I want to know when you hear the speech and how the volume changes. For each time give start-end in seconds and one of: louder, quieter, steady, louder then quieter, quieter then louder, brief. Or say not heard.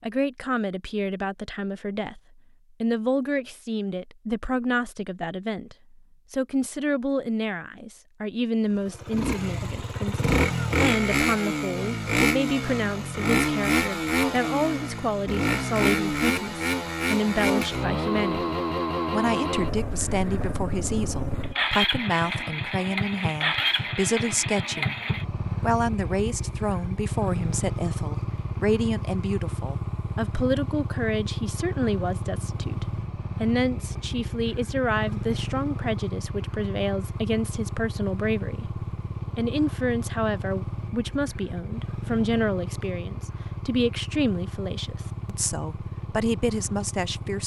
0.0-24.9 steady
25.6-47.4 steady.